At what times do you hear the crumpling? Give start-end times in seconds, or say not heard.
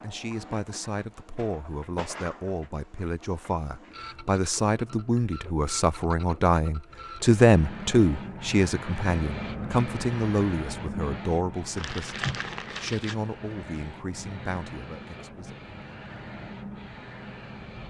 11.8-13.2.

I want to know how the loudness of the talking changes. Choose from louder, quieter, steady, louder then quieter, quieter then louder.
louder then quieter.